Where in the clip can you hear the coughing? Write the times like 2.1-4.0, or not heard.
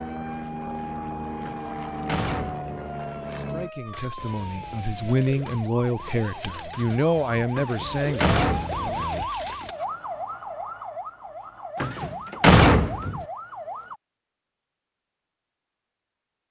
not heard.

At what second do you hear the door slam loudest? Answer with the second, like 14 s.
13 s.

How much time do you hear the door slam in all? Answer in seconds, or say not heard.
4 s.